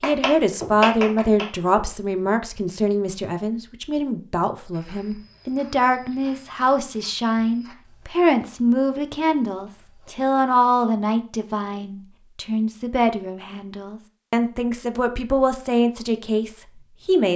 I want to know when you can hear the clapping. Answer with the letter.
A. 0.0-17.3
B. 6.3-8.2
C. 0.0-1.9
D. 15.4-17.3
C.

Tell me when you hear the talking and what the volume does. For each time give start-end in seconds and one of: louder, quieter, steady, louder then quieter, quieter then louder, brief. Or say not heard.
0.0-17.3 steady.